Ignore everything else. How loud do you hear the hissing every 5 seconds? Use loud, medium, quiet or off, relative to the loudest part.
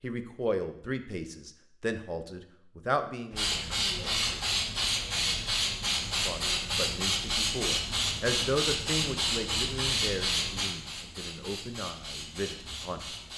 loud, loud, medium.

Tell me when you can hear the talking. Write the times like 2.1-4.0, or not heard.
0.0-3.5, 6.2-13.1.